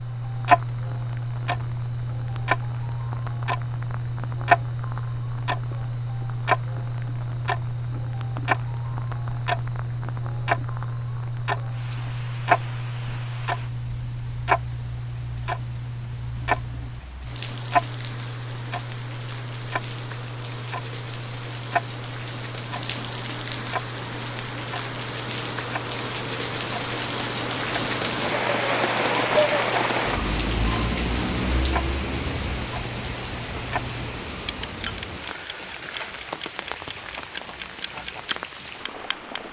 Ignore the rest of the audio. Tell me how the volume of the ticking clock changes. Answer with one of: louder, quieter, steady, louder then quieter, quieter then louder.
quieter.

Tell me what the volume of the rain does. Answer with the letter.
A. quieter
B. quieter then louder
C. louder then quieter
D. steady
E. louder
C.